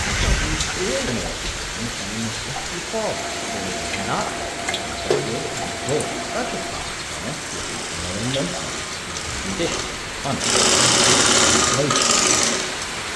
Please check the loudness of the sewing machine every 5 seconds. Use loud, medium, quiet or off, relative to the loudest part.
quiet, quiet, loud.